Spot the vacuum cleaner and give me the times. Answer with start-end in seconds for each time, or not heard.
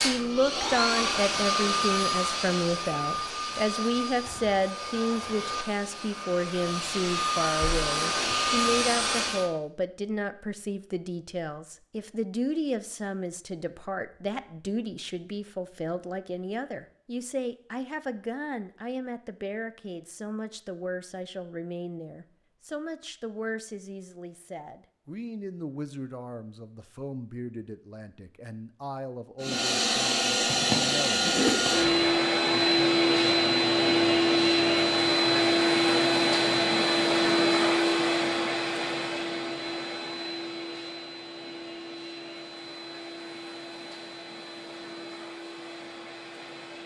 0.0-9.5, 29.4-46.8.